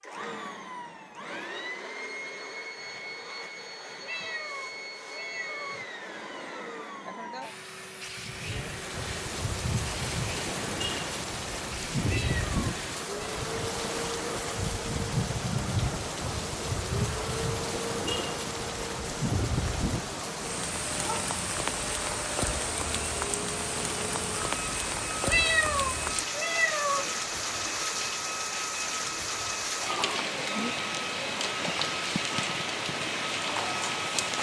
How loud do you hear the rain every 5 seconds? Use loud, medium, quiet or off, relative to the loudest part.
off, medium, loud, loud, loud, loud, loud.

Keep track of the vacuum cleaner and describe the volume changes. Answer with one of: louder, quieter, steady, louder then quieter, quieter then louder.
steady.